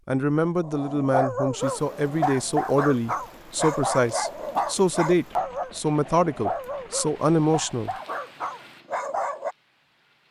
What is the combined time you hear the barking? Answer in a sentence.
You can hear the barking for 9 seconds altogether.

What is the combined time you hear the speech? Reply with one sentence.
The speech can be heard for 8 seconds in total.